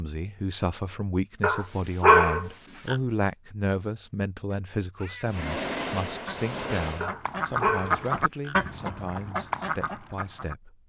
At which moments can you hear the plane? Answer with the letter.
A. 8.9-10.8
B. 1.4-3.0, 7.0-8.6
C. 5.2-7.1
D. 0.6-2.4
C.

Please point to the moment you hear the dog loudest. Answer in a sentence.
The loudest moment of the dog is at 2 seconds.